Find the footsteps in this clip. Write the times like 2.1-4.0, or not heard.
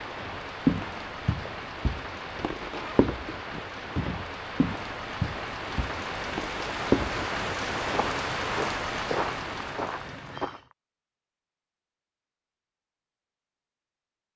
0.2-10.6.